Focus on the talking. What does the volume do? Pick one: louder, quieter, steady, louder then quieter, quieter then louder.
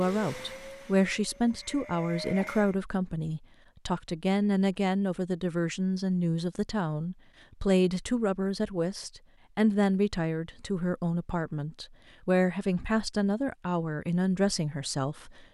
steady.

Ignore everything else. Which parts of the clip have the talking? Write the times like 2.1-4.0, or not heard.
0.0-15.4.